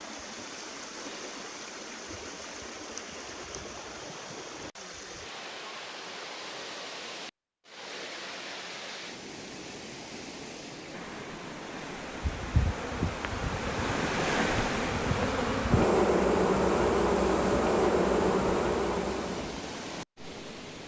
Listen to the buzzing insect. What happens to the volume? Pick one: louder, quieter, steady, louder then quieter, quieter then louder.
louder.